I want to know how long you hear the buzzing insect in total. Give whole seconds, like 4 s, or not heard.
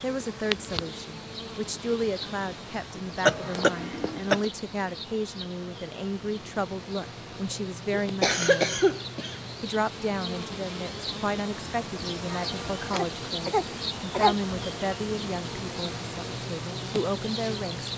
18 s.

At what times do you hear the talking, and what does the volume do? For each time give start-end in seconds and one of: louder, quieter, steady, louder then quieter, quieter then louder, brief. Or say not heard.
0.0-8.8 steady
9.6-17.9 steady.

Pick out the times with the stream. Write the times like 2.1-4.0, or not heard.
not heard.